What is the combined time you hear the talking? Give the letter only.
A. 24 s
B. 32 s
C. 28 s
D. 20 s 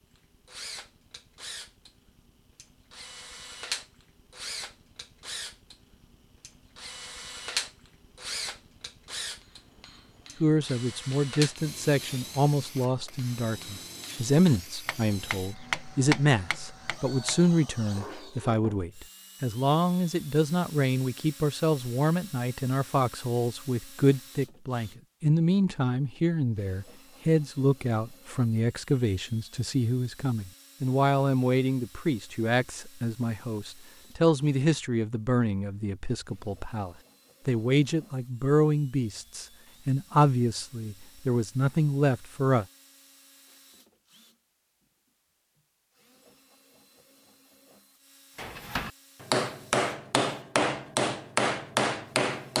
B.